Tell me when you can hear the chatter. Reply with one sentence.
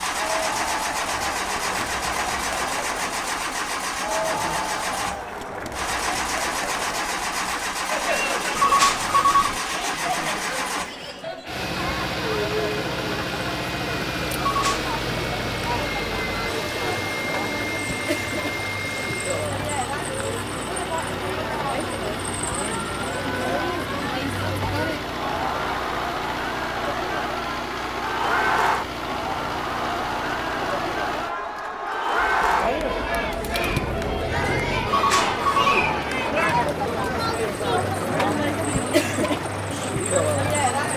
You can hear the chatter from 0.0 to 40.9 s.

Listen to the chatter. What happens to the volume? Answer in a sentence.
The volume of the chatter goes up.